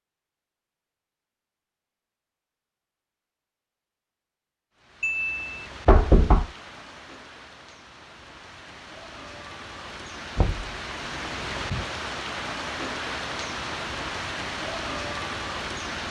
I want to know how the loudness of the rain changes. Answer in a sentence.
The volume of the rain goes up.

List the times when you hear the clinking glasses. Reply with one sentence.
The clinking glasses can't be heard in this clip.